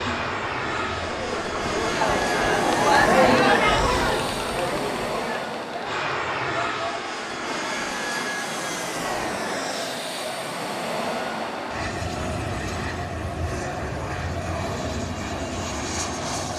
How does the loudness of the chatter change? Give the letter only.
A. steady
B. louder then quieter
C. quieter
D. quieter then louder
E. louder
C.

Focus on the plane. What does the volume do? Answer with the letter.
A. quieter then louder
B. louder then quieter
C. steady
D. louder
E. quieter
C.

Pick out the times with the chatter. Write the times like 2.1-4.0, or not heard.
0.0-16.5.